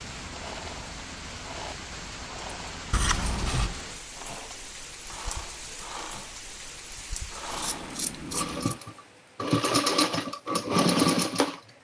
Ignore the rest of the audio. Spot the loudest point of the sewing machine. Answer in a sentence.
The loudest moment of the sewing machine is at 11 seconds.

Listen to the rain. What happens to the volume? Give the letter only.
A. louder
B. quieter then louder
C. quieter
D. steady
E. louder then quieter
C.